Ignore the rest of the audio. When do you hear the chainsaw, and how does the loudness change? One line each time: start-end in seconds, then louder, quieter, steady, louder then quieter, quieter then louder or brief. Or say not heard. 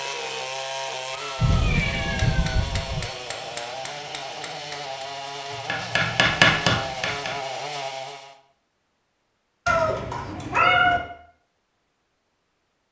0.0-8.3 steady.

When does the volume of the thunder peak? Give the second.
2 s.